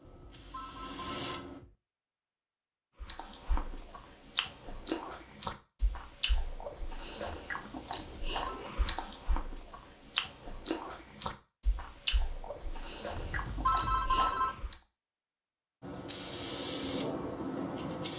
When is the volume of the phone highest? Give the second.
14 s.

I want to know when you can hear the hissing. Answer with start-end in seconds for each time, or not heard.
0.0-1.6, 15.8-18.1.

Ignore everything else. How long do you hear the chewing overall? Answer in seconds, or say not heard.
12 s.